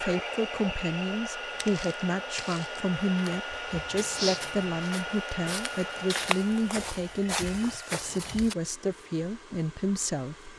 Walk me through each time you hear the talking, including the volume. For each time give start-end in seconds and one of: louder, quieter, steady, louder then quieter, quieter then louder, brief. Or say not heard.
0.0-10.5 steady.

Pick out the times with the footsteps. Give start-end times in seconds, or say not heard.
1.6-8.6.